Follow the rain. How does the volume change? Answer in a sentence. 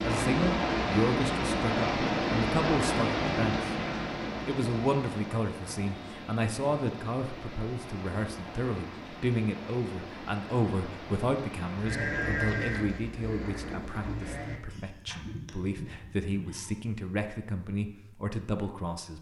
The loudness of the rain goes down.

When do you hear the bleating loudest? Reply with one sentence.
The volume of the bleating peaks at 12 seconds.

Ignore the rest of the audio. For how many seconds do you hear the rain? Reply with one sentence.
You can hear the rain for 12 seconds altogether.